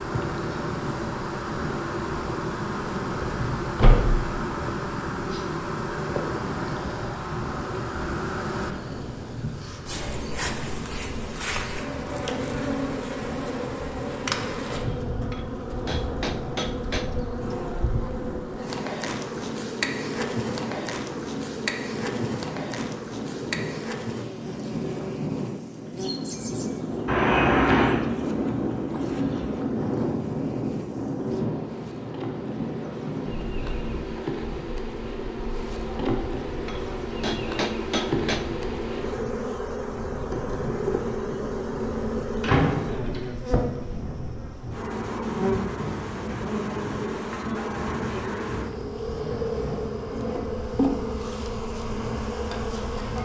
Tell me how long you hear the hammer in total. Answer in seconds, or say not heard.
4 s.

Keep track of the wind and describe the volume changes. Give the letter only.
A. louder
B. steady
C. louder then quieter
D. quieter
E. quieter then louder
C.